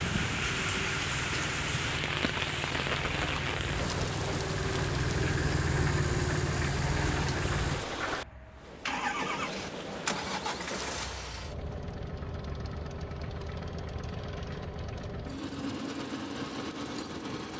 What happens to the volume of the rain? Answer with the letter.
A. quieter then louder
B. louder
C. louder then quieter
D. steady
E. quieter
E.